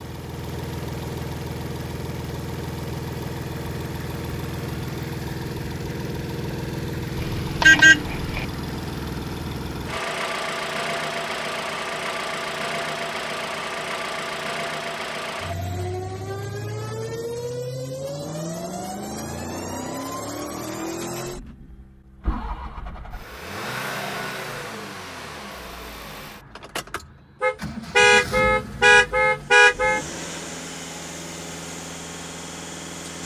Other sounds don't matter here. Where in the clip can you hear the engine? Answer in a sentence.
You can hear the engine from 0.0 to 33.2 s.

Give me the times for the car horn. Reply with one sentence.
The car horn can be heard from 7.2 to 8.4 s and from 27.4 to 30.0 s.